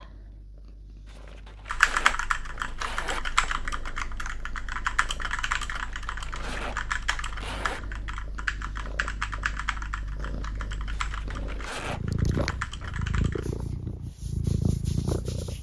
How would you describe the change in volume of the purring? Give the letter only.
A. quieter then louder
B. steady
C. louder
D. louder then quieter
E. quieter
C.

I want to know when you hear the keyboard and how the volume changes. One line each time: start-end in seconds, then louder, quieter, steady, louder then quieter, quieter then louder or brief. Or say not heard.
1.6-13.5 quieter.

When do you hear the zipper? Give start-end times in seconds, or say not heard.
1.1-3.5, 5.7-7.8, 10.9-12.2.